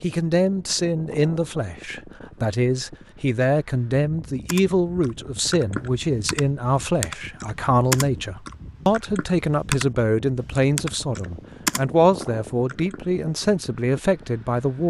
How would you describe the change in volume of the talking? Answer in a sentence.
The volume of the talking stays about the same.